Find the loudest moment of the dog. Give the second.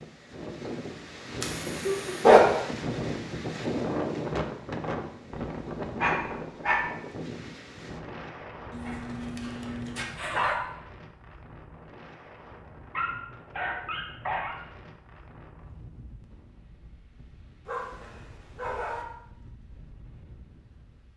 2 s.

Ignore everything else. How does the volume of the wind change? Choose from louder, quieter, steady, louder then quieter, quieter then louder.
quieter.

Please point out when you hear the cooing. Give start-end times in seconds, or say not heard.
not heard.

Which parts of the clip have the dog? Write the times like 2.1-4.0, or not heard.
1.4-2.6, 6.0-6.8, 8.7-10.6, 12.9-14.6, 17.6-19.1.